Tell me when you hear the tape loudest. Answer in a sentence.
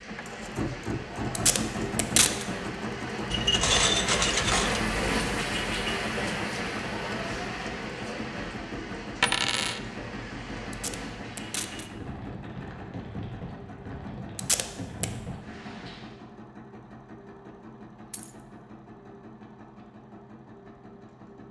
The volume of the tape peaks at 2 seconds.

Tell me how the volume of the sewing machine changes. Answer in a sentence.
The loudness of the sewing machine goes down.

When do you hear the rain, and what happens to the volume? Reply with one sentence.
The rain can be heard from 0.0 to 16.2 s, getting louder then quieter.